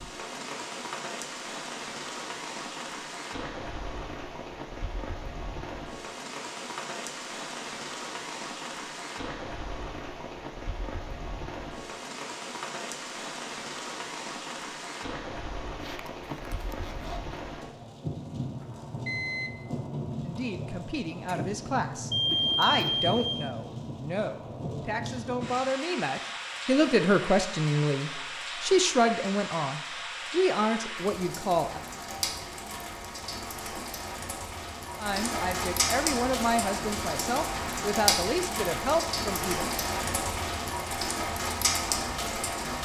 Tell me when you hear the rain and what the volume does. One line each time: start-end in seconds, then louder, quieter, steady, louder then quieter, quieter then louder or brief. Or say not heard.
0.0-42.8 louder.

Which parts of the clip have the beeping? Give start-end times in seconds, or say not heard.
18.6-19.6, 22.1-23.5.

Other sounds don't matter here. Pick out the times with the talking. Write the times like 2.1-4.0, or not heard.
20.2-31.8, 35.0-39.6.